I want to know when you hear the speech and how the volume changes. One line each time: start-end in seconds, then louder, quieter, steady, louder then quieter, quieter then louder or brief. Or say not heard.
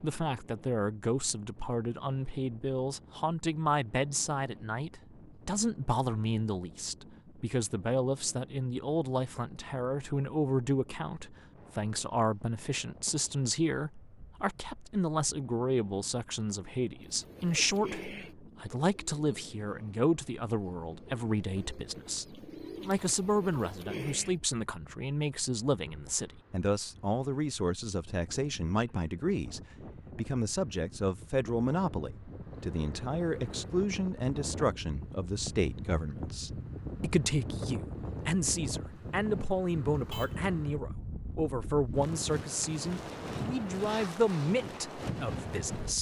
0.0-45.9 steady.